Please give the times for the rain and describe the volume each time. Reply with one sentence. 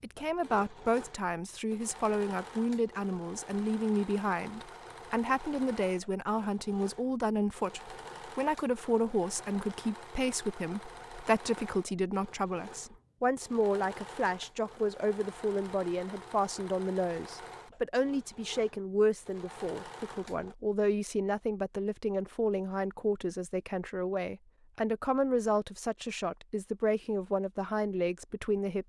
The rain can't be heard in this clip.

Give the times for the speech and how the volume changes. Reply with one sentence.
The speech can be heard from 0.0 to 28.8 s, at a steady volume.